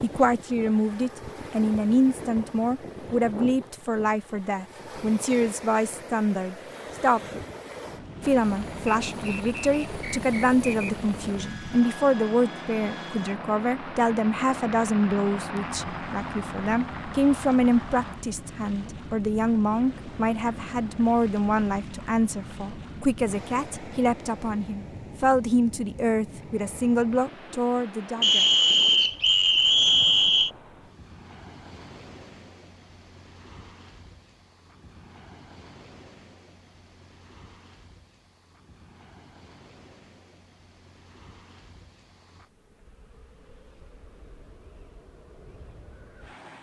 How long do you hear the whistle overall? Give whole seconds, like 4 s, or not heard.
4 s.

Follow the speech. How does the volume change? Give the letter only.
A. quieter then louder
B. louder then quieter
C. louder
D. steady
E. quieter
D.